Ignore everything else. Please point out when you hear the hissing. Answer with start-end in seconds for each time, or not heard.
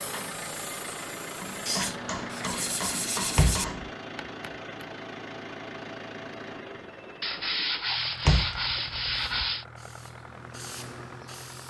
0.0-1.8, 9.3-11.6.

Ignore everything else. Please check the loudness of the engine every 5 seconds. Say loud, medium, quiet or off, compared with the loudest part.
loud, loud, medium.